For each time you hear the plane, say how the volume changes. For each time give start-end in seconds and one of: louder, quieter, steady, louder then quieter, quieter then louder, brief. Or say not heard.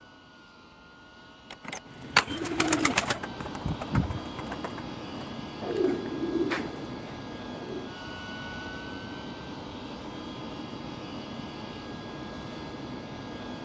0.0-13.6 louder.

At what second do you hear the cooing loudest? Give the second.
2 s.